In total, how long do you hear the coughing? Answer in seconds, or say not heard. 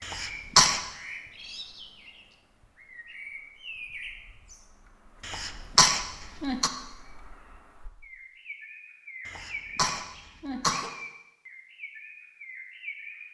4 s.